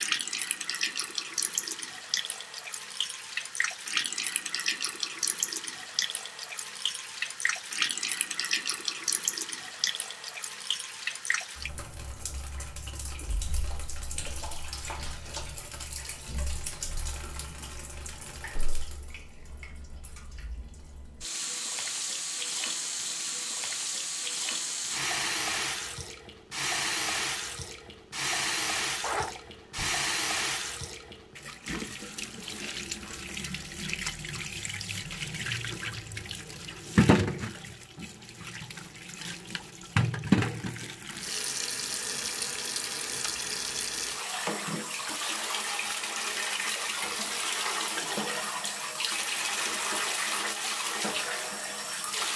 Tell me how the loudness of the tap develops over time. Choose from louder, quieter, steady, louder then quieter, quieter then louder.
quieter then louder.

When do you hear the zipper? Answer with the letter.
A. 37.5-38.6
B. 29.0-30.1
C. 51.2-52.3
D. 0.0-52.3
B.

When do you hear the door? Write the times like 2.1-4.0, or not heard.
not heard.